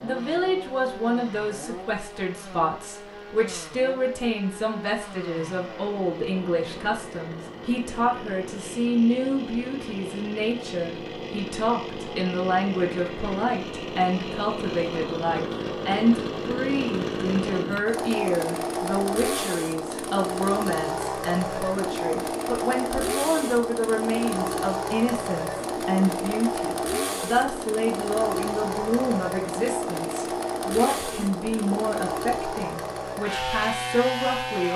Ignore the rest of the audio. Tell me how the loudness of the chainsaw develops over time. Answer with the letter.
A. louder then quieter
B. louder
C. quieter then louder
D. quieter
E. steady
B.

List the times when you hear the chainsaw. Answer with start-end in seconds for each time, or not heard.
0.0-34.7.